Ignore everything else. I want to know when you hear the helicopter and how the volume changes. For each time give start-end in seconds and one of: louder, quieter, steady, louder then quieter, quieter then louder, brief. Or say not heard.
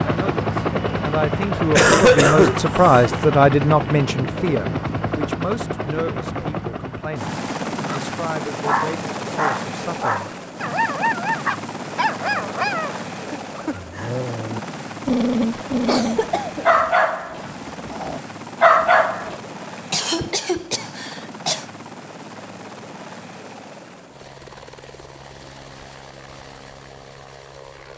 0.0-27.9 quieter.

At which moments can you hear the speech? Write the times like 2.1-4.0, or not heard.
0.0-10.3.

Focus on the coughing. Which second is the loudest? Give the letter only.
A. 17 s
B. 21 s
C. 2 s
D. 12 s
C.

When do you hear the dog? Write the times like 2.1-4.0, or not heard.
7.8-19.4.